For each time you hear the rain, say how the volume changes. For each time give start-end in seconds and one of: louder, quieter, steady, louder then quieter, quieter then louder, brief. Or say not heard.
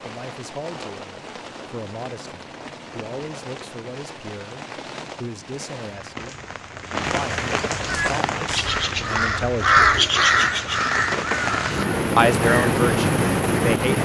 0.0-14.0 louder.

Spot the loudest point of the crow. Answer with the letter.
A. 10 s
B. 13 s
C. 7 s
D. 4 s
A.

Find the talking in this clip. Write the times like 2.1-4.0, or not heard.
0.0-6.4, 7.1-9.8, 12.2-14.0.